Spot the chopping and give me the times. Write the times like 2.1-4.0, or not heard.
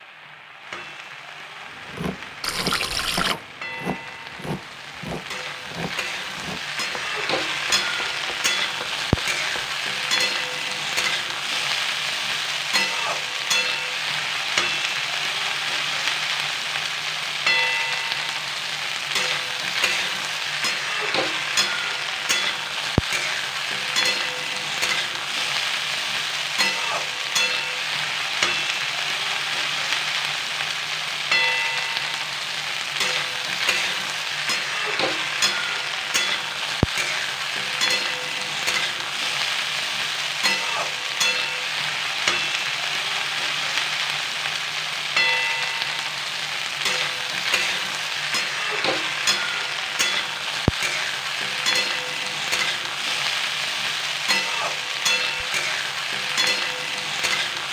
1.8-9.8.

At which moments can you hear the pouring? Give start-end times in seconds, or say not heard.
2.4-3.4.